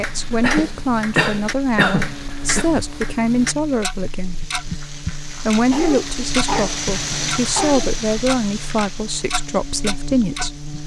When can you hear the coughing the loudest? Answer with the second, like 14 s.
2 s.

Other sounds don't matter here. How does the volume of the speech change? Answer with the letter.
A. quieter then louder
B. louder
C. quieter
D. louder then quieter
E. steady
E.